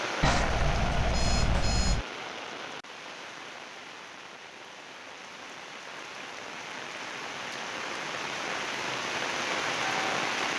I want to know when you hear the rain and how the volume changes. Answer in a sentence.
The rain can be heard from 0.0 to 10.5 s, getting quieter then louder.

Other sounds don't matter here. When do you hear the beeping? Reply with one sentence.
You can hear the beeping from 0.2 to 2.0 s.